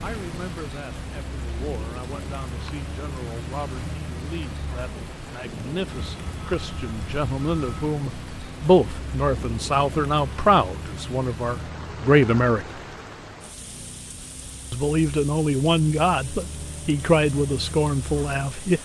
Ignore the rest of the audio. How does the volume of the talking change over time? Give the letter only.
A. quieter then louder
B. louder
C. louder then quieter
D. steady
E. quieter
B.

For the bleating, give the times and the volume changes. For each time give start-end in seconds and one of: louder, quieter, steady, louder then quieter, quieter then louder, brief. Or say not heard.
not heard.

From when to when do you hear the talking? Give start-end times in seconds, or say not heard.
0.0-12.7, 14.7-18.7.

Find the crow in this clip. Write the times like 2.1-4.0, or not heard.
not heard.